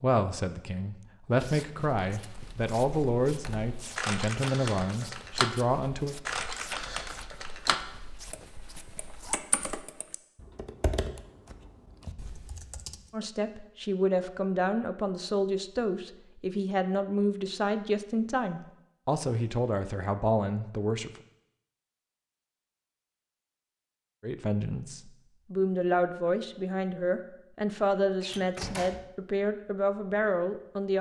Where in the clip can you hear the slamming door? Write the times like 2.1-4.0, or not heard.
28.2-29.1.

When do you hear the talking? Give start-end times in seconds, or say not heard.
0.0-6.2, 13.1-21.2, 24.2-30.9.